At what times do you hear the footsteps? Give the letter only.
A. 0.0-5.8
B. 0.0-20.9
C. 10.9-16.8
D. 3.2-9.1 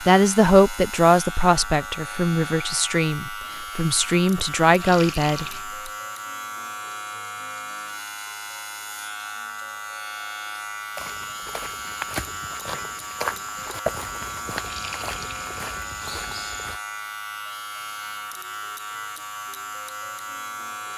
C.